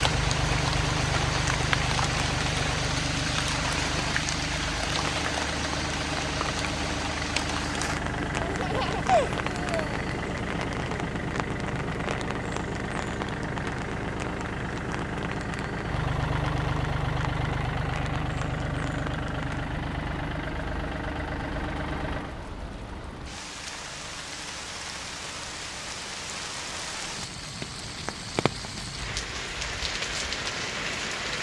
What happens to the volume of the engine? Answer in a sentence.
The volume of the engine goes down.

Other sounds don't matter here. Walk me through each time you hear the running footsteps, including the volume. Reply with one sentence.
The running footsteps can't be heard in this clip.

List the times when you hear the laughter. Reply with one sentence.
The laughter can be heard from 8.4 to 10.0 s.